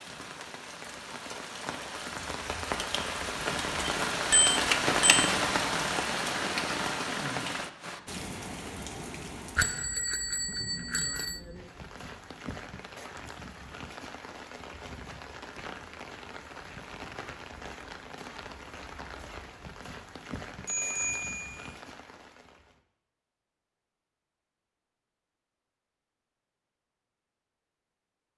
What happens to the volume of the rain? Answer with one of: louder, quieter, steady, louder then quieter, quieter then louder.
quieter.